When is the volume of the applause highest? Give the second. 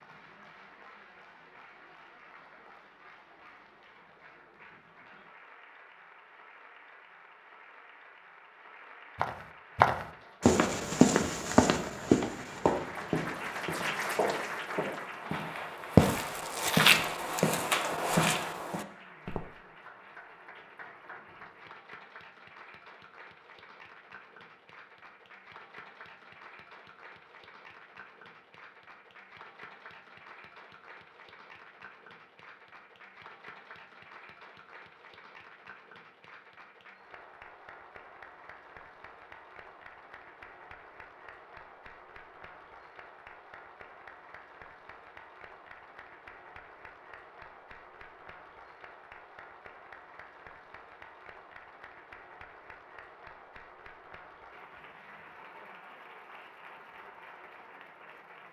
14 s.